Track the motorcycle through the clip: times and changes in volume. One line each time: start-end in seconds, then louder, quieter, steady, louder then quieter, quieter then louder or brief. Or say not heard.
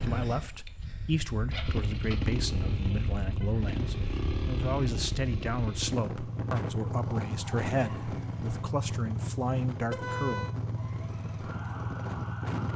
0.0-12.7 steady.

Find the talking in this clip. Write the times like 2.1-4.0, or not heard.
0.0-10.4.